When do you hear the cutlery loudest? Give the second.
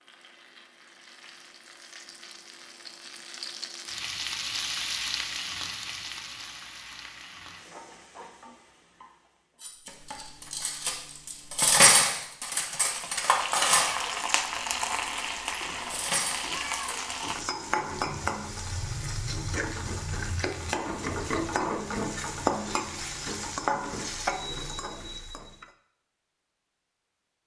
12 s.